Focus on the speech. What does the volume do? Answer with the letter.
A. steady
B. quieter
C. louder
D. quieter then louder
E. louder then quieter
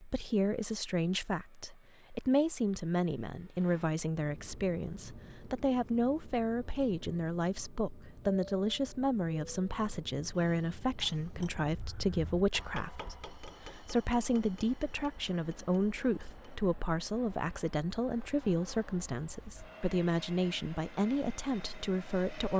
A.